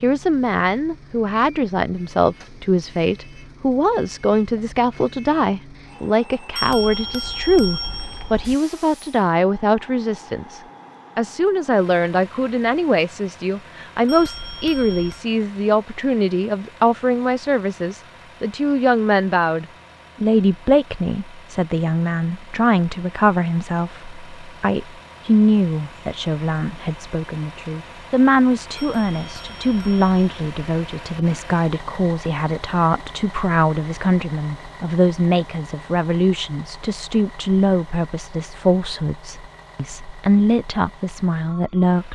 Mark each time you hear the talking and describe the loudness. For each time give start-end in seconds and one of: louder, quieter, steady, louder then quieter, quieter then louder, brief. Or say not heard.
0.0-42.1 steady.